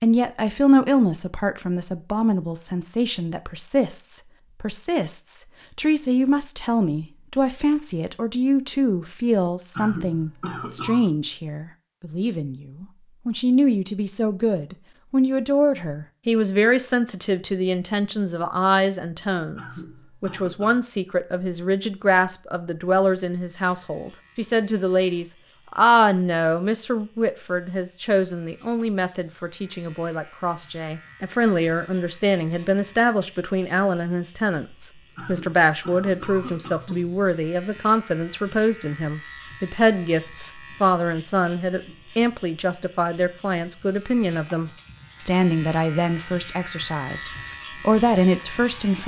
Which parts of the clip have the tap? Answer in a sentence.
The tap can't be heard in this clip.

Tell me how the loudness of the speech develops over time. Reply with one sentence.
The loudness of the speech stays about the same.